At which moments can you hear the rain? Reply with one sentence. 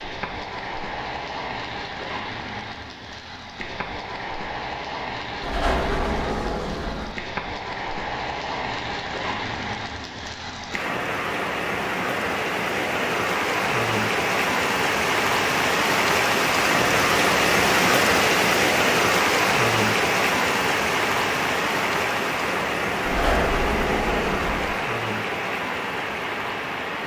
The rain can be heard from 0.0 to 27.0 s.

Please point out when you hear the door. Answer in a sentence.
You can hear the door from 5.4 to 7.2 s and from 23.1 to 24.8 s.